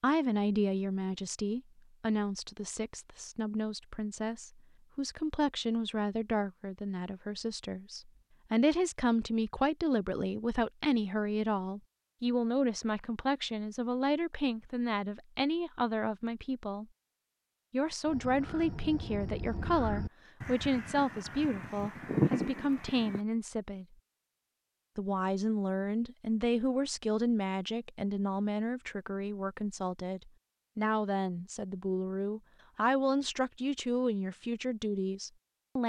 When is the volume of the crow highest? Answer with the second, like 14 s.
22 s.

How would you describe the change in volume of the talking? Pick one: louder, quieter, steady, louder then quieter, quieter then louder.
steady.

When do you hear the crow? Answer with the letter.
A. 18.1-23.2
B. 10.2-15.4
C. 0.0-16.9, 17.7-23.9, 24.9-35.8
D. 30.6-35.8
A.